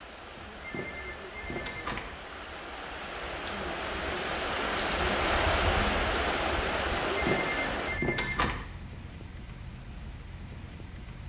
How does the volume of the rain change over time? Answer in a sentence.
The volume of the rain goes up, then down.